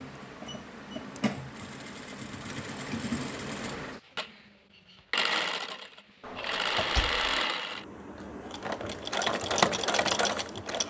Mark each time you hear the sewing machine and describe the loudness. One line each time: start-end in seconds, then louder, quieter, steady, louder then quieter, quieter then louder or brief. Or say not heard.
0.0-10.8 louder.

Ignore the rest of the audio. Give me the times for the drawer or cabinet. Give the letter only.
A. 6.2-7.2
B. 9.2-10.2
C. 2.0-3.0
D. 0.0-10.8
A.